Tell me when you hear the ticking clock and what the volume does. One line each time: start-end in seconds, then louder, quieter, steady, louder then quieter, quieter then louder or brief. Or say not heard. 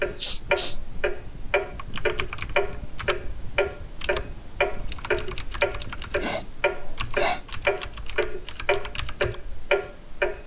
0.0-10.4 steady.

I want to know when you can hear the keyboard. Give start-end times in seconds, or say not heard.
1.8-9.3.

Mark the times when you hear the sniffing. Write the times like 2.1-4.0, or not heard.
0.1-0.8, 6.2-7.5.